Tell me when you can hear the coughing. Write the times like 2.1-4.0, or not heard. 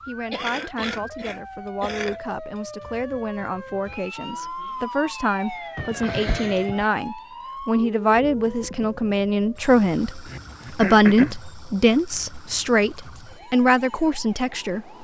0.3-2.2, 5.8-6.8, 10.2-11.4.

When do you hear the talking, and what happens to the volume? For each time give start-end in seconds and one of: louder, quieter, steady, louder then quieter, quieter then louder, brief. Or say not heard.
0.1-14.9 louder.